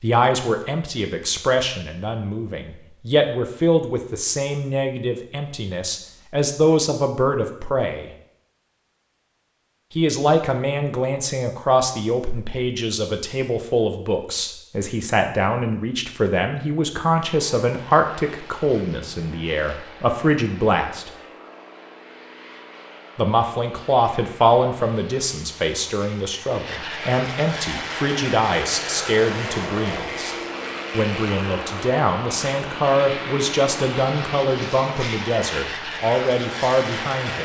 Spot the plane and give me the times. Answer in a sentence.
You can hear the plane from 17.3 to 37.4 s.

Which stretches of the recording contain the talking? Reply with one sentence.
The talking can be heard from 0.0 to 8.1 s, from 9.9 to 21.1 s and from 23.1 to 37.4 s.